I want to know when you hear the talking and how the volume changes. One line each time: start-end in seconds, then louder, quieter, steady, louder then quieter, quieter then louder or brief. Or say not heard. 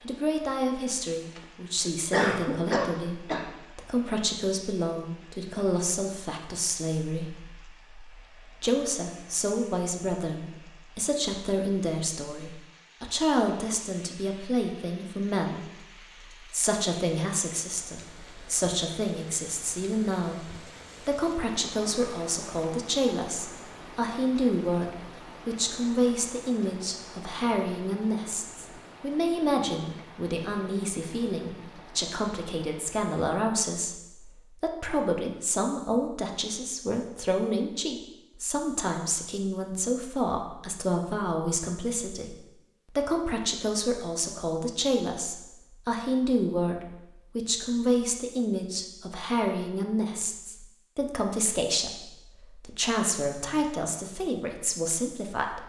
0.0-55.6 steady.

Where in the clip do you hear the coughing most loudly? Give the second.
2 s.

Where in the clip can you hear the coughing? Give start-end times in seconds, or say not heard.
0.8-3.5.